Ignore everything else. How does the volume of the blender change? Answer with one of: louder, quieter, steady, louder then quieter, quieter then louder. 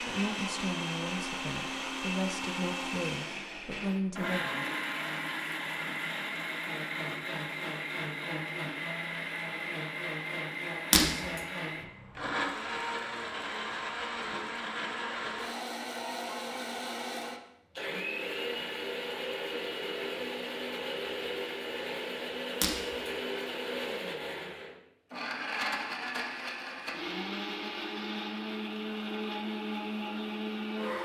steady.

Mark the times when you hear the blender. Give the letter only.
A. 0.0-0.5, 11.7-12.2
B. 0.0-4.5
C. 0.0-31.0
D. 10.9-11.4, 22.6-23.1
C.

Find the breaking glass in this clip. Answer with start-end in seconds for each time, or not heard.
10.9-11.4, 22.6-23.1.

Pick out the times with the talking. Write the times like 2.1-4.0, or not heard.
0.0-4.5.